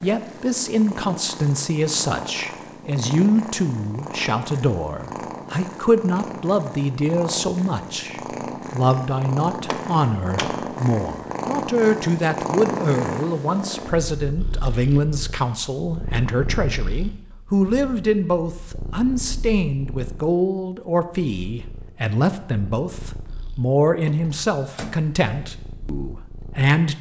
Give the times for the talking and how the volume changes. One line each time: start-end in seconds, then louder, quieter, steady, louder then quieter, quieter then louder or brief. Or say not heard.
0.0-26.9 steady.